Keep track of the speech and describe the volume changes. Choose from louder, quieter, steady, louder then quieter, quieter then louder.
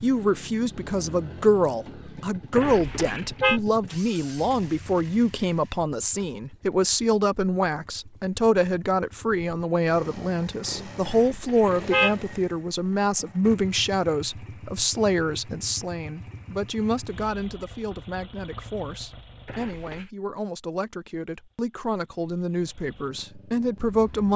quieter.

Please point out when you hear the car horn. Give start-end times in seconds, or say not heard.
2.5-3.6, 11.1-12.2, 19.4-20.1.